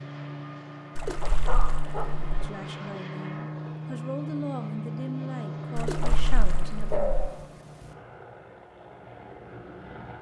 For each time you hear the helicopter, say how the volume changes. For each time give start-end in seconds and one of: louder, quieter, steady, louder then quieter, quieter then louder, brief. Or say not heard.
0.0-10.1 louder then quieter.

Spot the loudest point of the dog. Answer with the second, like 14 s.
7 s.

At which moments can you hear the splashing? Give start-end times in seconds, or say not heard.
0.9-2.2, 5.8-7.3.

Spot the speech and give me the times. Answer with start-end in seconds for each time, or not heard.
2.4-7.2.